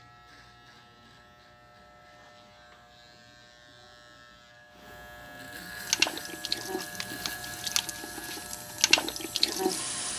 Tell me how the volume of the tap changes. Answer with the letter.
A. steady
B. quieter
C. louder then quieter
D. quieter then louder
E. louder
D.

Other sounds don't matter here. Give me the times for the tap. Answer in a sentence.
You can hear the tap from 5.8 to 10.1 s.